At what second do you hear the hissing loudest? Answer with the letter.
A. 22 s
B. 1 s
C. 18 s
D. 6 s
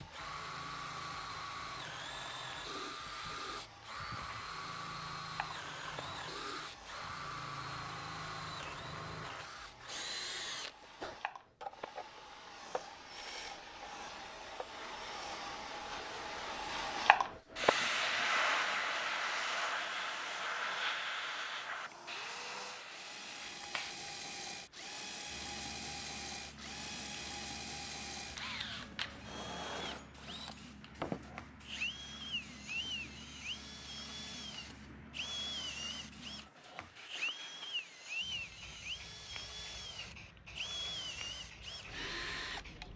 C.